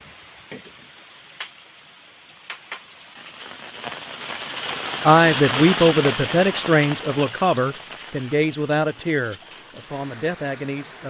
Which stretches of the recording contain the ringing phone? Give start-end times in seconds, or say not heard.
not heard.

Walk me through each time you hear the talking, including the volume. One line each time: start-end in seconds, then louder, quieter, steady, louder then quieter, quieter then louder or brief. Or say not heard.
5.0-11.0 quieter.